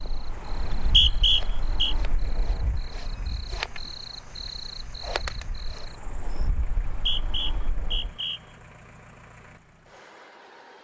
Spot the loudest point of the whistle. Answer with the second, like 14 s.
1 s.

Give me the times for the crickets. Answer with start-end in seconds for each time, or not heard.
0.0-6.5.